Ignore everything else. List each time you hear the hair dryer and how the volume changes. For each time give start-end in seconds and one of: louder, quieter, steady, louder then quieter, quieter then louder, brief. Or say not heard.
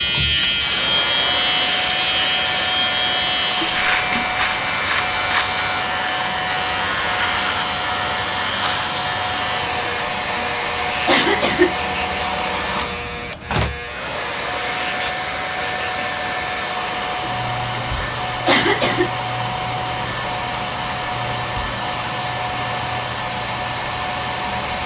0.0-24.8 steady.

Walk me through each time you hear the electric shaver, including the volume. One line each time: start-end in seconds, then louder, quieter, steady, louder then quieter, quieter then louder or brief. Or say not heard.
0.0-24.8 quieter.